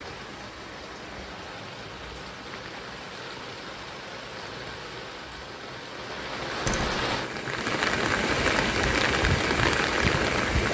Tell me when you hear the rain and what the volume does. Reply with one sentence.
The rain can be heard from 0.0 to 10.6 s, getting louder.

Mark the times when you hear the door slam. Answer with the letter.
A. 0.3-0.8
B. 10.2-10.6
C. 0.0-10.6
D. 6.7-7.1
D.